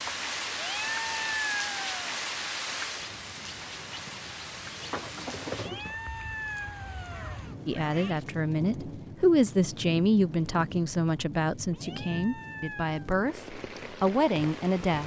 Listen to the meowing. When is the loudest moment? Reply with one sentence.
The loudest moment of the meowing is at 1 second.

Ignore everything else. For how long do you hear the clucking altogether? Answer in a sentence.
You can hear the clucking for 6 seconds altogether.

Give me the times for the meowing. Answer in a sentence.
You can hear the meowing from 0.5 to 2.0 s, from 5.5 to 8.2 s and from 11.7 to 13.0 s.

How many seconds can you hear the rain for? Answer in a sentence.
You can hear the rain for 15 seconds altogether.